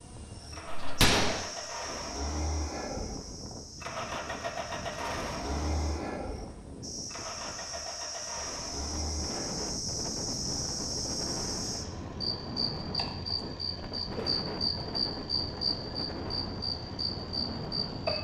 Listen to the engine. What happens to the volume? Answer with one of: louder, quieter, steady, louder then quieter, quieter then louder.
quieter.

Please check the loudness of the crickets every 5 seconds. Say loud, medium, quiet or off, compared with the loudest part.
medium, medium, loud, loud.